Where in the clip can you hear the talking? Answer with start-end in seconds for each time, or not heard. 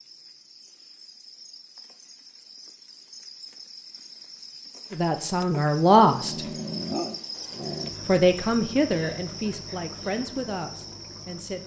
4.9-6.5, 8.1-11.6.